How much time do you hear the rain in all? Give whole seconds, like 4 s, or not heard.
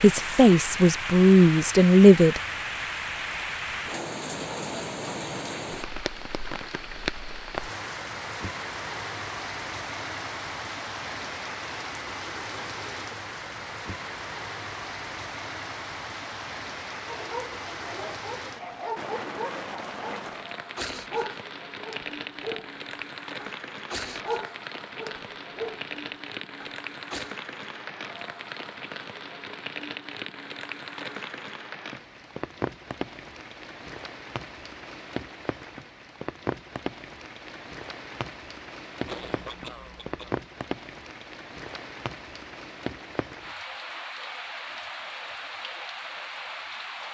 47 s.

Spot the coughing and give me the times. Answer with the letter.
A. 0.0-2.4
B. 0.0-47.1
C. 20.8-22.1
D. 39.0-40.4
D.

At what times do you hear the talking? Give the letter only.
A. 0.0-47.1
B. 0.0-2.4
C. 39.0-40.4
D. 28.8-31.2
B.